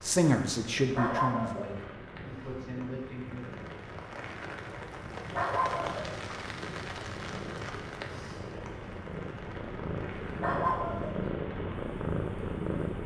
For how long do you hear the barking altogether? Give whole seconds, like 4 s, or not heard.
3 s.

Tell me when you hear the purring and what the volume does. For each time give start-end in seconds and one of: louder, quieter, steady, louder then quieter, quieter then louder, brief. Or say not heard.
0.0-13.0 louder.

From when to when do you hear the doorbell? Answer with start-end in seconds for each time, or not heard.
not heard.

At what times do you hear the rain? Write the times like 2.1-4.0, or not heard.
0.0-13.0.